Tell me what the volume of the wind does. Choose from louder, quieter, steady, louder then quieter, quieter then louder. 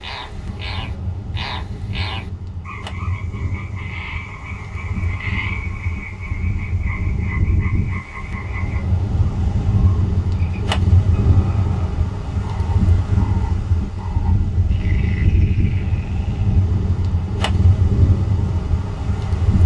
louder.